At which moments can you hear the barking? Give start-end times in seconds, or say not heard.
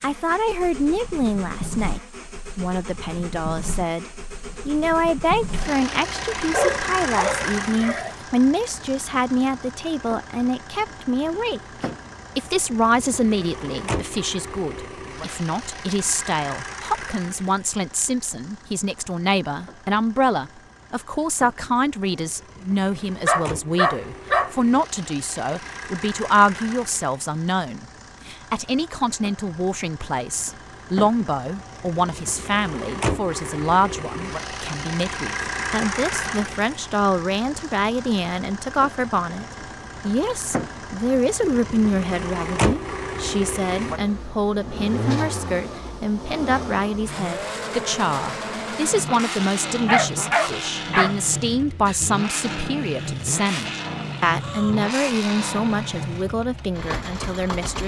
6.5-8.2, 23.2-24.5, 49.9-51.1.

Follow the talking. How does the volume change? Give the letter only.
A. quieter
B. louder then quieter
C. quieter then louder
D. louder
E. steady
E.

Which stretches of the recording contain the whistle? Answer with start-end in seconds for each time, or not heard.
not heard.